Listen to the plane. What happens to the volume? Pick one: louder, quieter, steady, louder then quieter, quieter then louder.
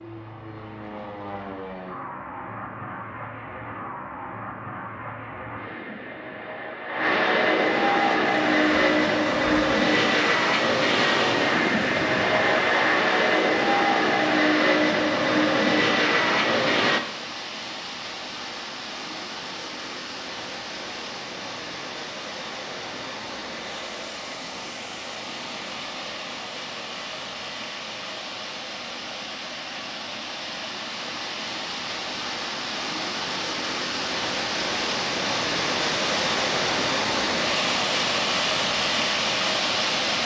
louder.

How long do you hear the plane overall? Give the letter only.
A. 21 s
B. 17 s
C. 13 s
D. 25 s
B.